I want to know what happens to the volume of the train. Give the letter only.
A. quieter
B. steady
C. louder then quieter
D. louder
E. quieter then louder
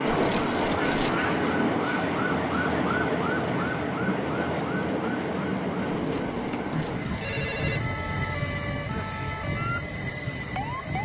A.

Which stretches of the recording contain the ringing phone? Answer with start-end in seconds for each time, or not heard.
0.1-1.3, 5.8-7.8.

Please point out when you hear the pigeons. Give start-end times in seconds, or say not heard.
not heard.